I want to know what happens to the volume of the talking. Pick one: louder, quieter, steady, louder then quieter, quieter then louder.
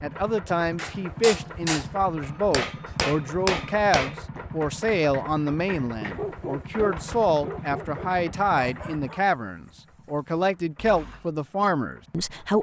steady.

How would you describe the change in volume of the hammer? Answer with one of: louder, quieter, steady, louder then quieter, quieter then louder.
quieter.